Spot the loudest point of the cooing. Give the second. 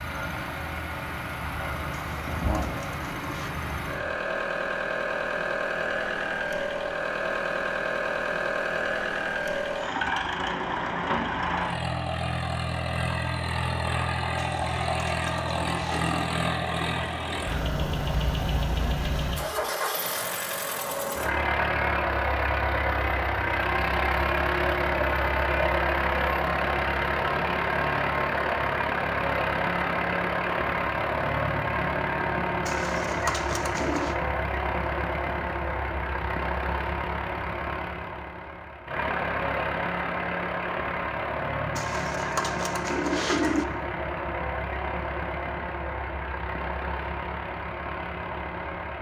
43 s.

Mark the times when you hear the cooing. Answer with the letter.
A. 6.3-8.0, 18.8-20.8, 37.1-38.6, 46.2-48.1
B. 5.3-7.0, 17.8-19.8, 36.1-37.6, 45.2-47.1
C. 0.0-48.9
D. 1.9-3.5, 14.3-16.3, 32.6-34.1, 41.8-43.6
D.